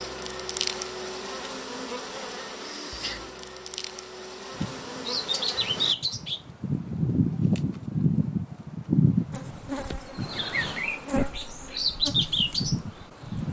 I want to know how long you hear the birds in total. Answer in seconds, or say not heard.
9 s.